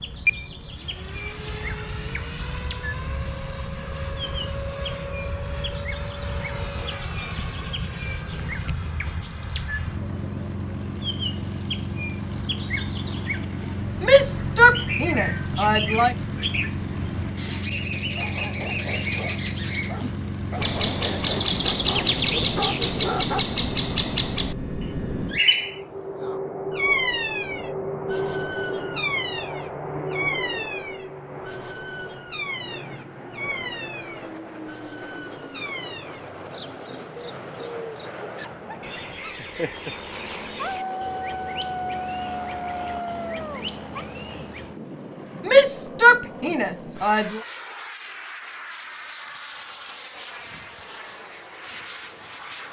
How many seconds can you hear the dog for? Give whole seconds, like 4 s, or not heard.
11 s.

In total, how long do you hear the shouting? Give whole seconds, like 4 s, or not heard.
4 s.